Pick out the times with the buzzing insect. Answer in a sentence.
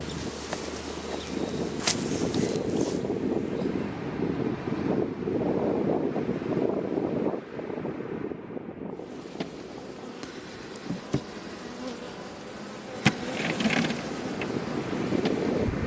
The buzzing insect can be heard from 0.0 to 4.0 s and from 8.9 to 15.8 s.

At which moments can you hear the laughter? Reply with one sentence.
The laughter can't be heard in this clip.